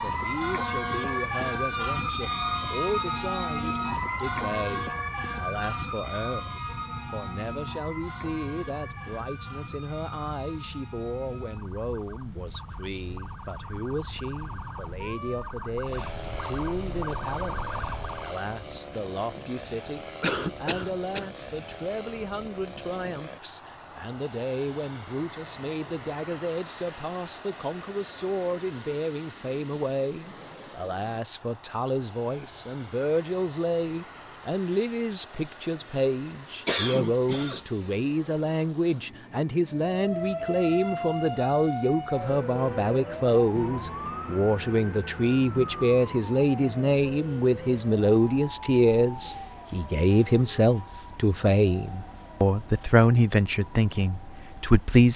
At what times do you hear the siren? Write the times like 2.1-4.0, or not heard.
0.0-18.4, 39.9-55.0.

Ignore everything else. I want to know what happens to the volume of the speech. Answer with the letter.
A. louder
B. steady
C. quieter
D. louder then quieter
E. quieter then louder
A.